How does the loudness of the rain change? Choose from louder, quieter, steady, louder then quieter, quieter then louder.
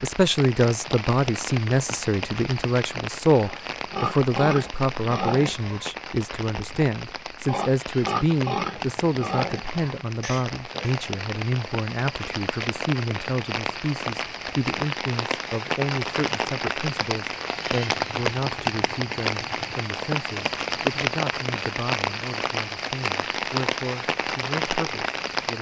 louder.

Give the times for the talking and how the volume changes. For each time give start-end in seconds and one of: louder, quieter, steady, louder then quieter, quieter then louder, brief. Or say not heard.
0.0-25.5 quieter.